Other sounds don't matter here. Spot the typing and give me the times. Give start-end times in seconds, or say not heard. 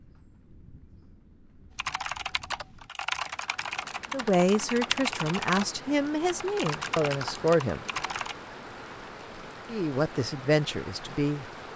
1.8-8.3.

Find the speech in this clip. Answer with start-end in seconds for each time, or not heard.
4.1-7.8, 9.7-11.4.